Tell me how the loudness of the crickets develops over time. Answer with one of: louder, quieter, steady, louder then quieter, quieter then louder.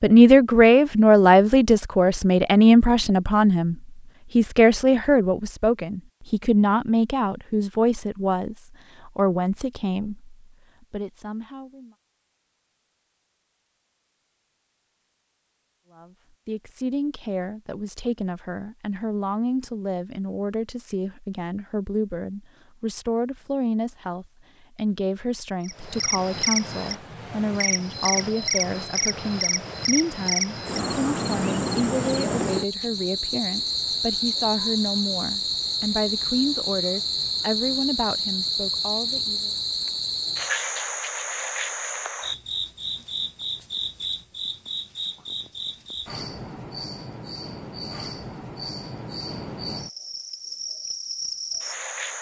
quieter.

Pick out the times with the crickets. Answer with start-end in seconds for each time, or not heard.
25.6-52.1.